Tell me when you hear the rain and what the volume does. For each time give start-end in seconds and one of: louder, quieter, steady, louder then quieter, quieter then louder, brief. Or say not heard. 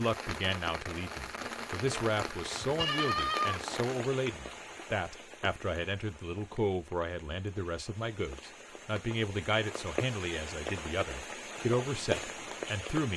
0.0-13.1 quieter then louder.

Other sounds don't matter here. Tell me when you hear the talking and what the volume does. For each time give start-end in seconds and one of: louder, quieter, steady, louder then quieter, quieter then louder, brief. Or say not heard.
0.0-13.1 steady.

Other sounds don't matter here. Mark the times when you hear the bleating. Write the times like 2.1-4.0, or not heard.
2.6-3.8.